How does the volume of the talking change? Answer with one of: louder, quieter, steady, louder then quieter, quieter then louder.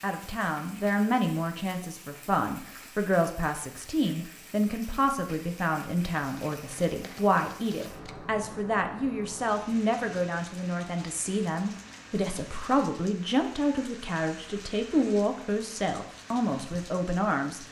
steady.